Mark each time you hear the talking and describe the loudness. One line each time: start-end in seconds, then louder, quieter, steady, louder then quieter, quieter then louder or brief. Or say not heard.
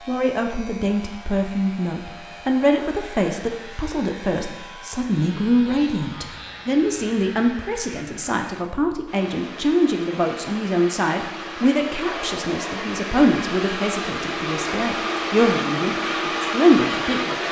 0.1-17.4 steady.